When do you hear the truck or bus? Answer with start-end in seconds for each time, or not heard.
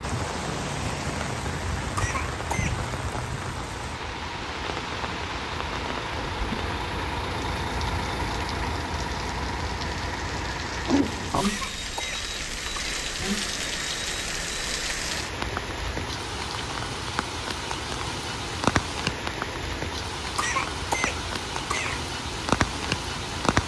0.0-23.6.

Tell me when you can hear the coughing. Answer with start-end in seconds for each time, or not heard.
1.9-2.8, 11.4-13.0, 20.4-22.1.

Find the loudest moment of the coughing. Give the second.
21 s.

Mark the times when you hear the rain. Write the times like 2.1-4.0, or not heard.
0.0-23.6.